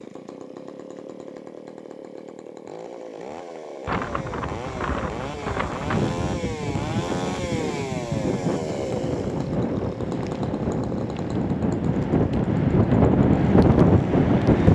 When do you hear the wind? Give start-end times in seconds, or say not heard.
3.9-14.7.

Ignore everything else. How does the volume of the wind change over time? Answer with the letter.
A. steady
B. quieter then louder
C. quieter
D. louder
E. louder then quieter
D.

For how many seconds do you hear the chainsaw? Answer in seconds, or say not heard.
15 s.